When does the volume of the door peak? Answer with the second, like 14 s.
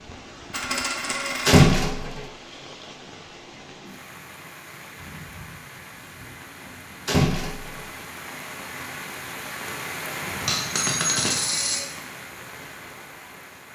2 s.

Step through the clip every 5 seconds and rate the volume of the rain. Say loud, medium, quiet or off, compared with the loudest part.
medium, loud, loud.